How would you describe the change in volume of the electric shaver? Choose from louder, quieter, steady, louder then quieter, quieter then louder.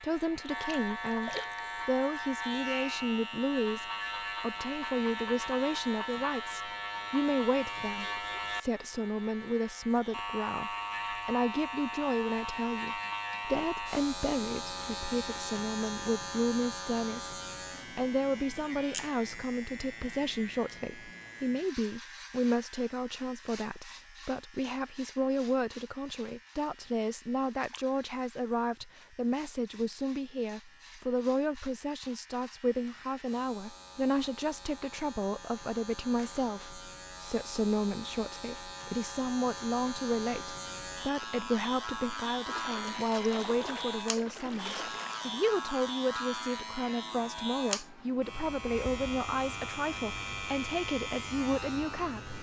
quieter then louder.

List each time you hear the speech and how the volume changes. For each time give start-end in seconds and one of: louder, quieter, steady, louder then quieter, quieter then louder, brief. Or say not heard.
0.0-52.3 steady.